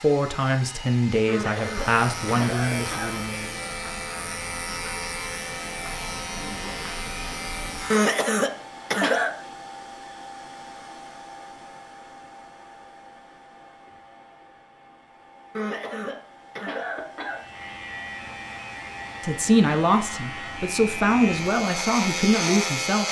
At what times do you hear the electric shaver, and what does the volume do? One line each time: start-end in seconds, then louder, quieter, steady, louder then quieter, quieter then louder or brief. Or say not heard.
1.6-8.1 steady
17.1-23.0 louder.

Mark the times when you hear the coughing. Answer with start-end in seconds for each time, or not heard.
1.2-3.2, 7.9-9.3, 15.5-17.4.